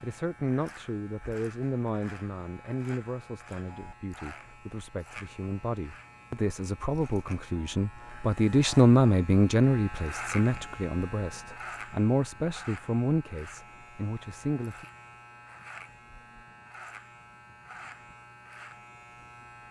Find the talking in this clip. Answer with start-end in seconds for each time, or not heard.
0.0-14.8.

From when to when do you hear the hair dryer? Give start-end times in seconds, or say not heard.
not heard.